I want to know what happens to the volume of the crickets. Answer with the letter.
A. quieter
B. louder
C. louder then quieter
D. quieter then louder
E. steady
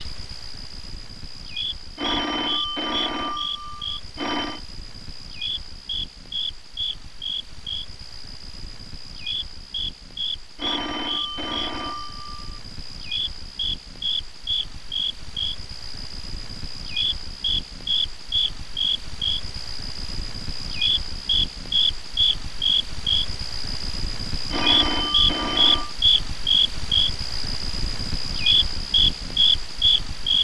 B.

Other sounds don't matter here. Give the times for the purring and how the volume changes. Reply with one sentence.
You can't hear the purring here.